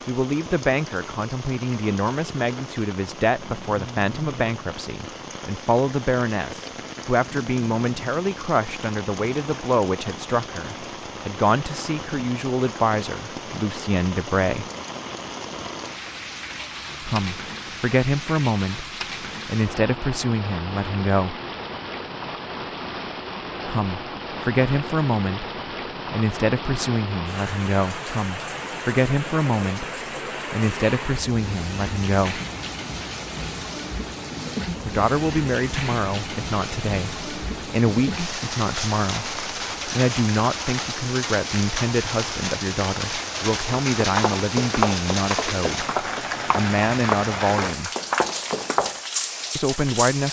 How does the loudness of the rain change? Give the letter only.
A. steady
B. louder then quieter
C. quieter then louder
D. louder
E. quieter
D.